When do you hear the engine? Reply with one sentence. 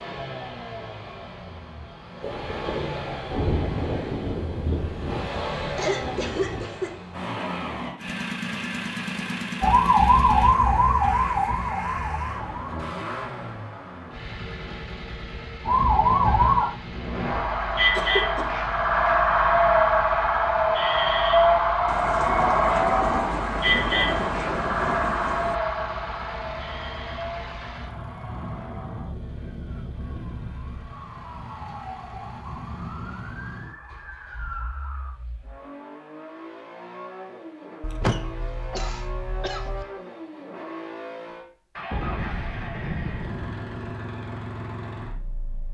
You can hear the engine from 0.0 to 45.6 s.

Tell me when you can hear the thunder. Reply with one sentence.
The thunder can be heard from 2.2 to 6.7 s, from 21.9 to 25.6 s and from 41.9 to 43.9 s.